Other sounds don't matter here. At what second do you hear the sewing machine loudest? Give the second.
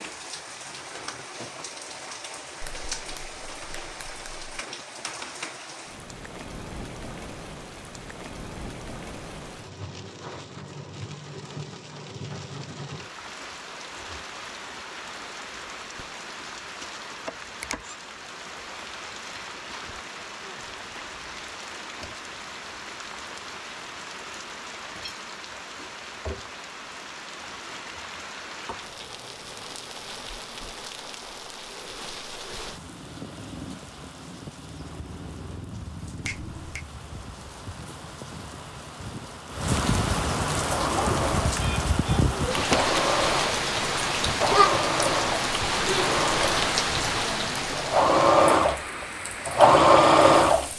50 s.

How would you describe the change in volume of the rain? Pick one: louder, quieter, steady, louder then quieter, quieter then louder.
louder.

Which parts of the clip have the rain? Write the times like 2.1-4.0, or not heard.
0.0-50.7.